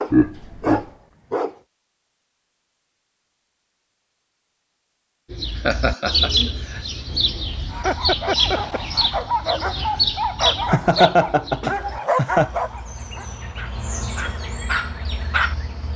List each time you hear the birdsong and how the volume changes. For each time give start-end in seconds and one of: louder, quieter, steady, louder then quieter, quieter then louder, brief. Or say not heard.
5.3-15.9 quieter then louder.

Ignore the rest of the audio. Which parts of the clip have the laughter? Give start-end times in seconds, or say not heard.
0.1-0.8, 5.7-6.8, 10.7-12.5.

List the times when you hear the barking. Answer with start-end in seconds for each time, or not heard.
0.0-1.6, 7.7-15.6.